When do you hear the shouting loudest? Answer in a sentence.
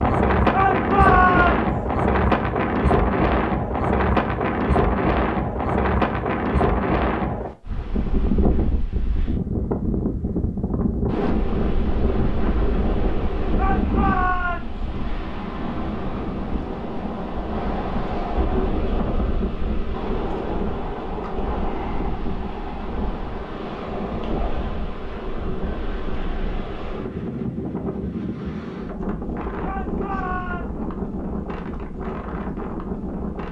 The volume of the shouting peaks at 1 second.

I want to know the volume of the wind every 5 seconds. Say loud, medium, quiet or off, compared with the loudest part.
loud, loud, medium, medium, medium, medium, medium.